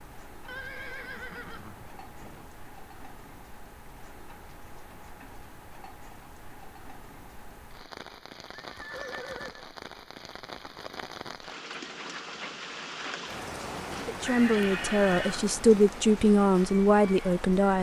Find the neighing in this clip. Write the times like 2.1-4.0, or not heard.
0.5-2.5, 8.5-9.7, 14.2-15.5.